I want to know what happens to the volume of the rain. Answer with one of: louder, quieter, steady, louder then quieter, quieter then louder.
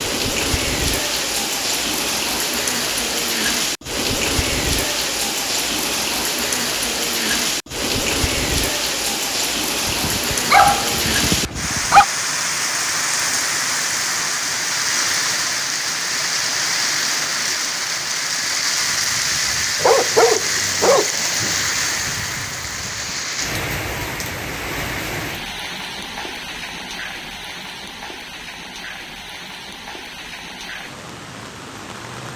quieter.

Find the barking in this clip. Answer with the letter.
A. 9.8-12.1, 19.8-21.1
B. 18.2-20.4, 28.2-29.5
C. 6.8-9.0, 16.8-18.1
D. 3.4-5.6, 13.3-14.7
A.